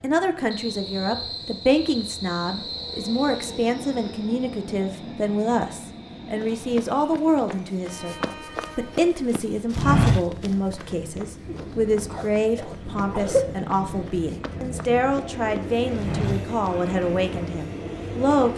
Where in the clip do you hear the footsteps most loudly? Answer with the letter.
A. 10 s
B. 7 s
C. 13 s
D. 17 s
A.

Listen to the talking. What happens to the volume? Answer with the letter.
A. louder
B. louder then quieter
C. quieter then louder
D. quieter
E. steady
E.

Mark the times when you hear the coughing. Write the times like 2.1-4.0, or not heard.
11.4-13.7.